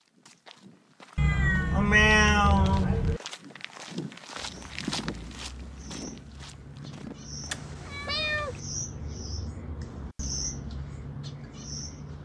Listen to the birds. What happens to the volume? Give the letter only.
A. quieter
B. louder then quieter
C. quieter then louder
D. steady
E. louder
E.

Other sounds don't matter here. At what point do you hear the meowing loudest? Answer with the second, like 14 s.
2 s.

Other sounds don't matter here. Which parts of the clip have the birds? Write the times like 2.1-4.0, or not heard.
4.3-12.1.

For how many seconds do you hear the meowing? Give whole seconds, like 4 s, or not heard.
3 s.